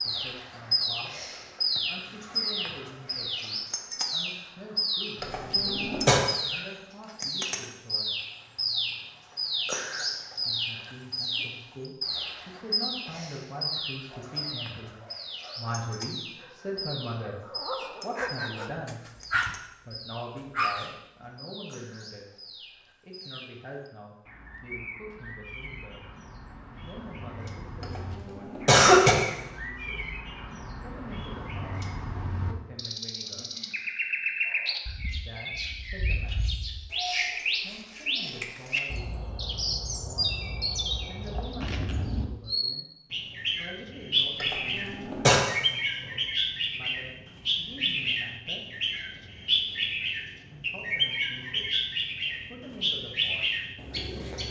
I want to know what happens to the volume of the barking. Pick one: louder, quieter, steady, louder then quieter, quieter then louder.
louder.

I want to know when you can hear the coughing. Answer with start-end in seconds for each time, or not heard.
5.2-6.2, 27.8-29.1, 44.4-45.4.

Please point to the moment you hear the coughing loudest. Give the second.
29 s.